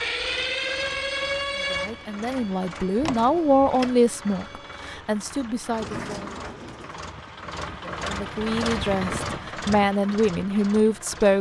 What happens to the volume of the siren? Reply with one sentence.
The loudness of the siren goes down.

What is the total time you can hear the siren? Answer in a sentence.
The siren can be heard for 5 seconds in total.